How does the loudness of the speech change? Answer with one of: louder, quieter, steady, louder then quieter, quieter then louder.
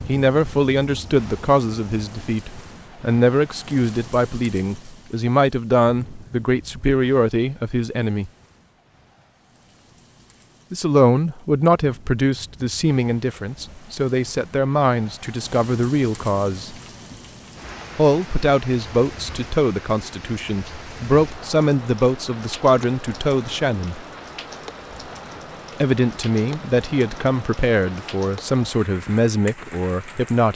steady.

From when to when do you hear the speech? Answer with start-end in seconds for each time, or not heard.
0.1-8.3, 10.7-16.8, 17.9-24.0, 25.8-30.5.